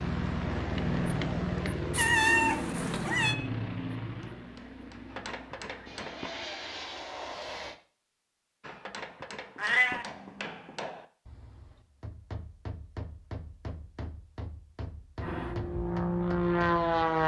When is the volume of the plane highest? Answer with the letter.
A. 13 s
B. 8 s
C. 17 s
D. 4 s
C.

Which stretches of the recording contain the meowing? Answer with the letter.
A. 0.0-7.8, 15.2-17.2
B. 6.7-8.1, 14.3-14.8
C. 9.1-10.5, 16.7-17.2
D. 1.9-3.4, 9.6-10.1
D.